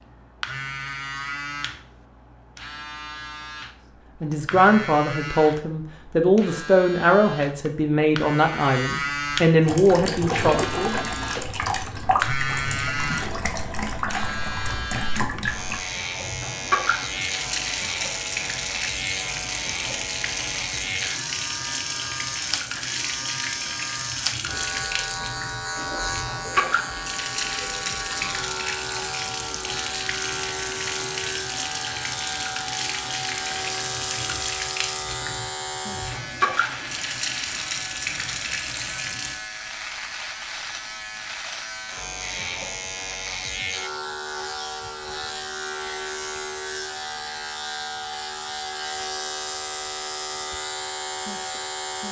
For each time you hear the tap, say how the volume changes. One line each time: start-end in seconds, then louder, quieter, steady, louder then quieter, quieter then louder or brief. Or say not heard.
9.6-39.4 steady.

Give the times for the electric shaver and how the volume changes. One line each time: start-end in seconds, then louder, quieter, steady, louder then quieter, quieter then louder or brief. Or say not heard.
0.0-52.0 steady.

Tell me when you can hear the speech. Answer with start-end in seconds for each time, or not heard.
4.2-11.0.